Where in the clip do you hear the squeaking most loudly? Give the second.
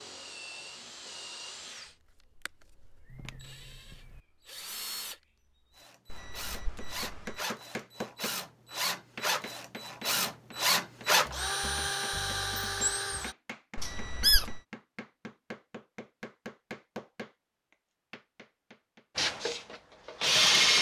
14 s.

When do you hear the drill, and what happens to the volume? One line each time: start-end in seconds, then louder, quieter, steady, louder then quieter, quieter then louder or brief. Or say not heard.
0.0-13.3 louder
19.1-20.7 brief.